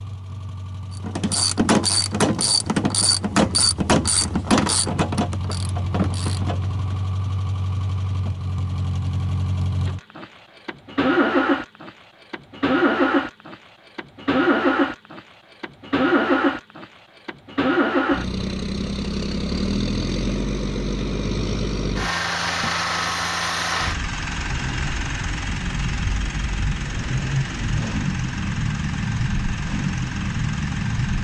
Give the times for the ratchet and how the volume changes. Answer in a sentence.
The ratchet can be heard from 1.0 to 7.0 s, getting quieter.